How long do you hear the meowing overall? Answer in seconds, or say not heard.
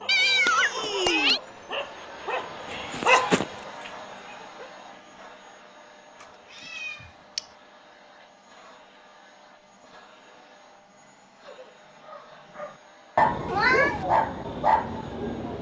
3 s.